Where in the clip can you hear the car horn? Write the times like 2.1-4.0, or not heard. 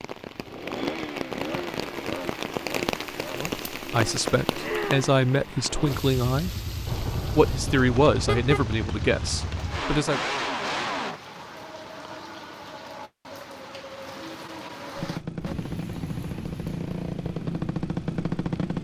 6.8-8.7.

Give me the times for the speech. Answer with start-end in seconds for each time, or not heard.
3.4-6.5, 7.3-10.2.